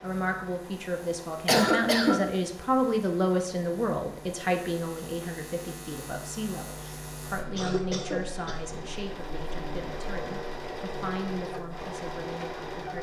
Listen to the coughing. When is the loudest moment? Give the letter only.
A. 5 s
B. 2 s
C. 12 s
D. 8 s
B.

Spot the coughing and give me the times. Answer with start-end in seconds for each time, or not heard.
1.4-2.2, 6.8-8.7.